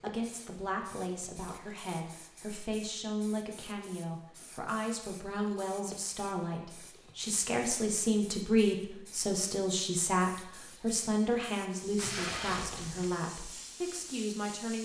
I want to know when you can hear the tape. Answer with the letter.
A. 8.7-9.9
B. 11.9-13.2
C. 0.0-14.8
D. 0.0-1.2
B.